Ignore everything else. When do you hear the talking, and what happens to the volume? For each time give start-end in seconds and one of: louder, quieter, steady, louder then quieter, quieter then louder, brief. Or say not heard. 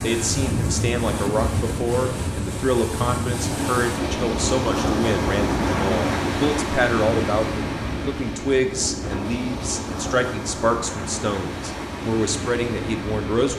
0.0-13.5 steady.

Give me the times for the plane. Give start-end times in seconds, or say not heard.
not heard.